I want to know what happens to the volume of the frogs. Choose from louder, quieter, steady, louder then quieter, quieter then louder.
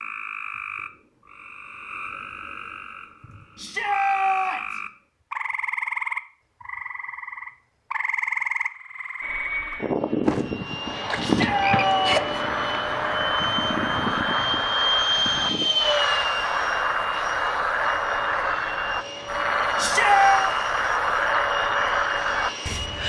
louder.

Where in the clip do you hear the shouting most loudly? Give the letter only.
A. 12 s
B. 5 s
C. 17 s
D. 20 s
D.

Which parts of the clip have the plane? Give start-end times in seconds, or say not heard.
9.2-23.0.